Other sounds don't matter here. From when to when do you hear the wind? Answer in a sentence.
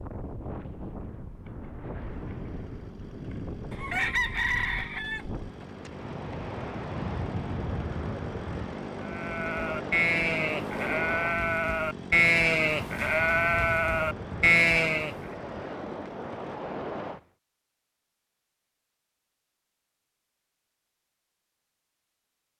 You can hear the wind from 0.0 to 17.2 s.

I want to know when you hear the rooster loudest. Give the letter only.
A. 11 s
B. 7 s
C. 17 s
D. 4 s
D.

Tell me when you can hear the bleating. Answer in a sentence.
You can hear the bleating from 9.0 to 15.2 s.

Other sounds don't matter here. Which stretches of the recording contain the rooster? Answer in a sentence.
You can hear the rooster from 3.7 to 5.7 s.